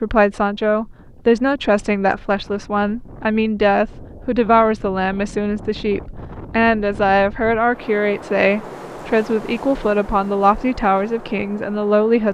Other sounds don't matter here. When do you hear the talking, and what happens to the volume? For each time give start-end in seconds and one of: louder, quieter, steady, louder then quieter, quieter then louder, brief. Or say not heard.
0.0-12.2 steady.